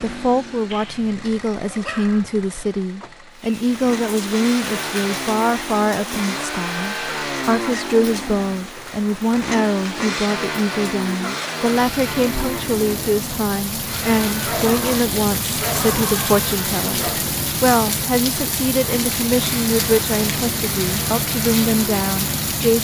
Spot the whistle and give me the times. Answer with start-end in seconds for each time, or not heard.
not heard.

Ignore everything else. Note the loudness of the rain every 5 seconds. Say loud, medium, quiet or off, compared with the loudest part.
medium, medium, medium, loud, loud.